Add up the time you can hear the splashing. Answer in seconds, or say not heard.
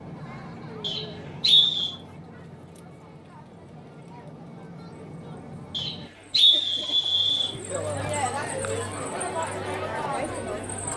not heard.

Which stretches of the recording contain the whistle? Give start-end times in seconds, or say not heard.
0.8-1.9, 5.7-7.5.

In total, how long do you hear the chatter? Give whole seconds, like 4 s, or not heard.
11 s.